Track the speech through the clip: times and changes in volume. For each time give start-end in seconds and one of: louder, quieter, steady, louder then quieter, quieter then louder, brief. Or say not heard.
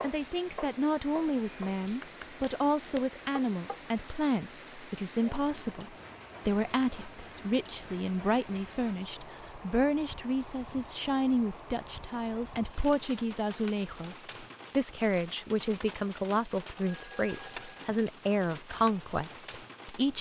0.0-20.1 steady.